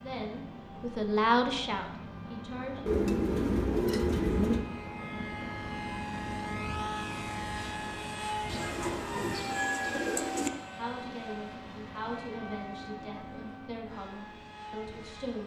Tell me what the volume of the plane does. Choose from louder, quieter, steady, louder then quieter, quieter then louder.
louder then quieter.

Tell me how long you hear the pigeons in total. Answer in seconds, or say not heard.
4 s.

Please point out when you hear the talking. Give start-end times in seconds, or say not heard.
0.0-2.9, 10.8-15.4.